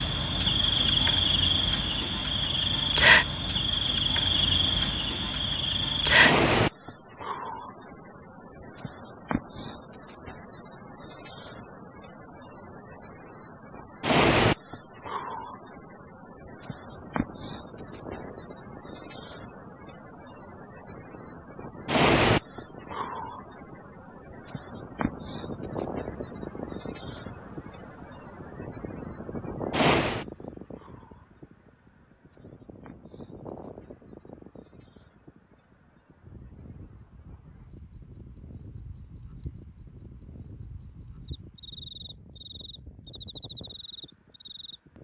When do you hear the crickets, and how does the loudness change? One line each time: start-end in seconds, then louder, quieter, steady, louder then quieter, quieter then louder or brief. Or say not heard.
0.0-44.8 quieter.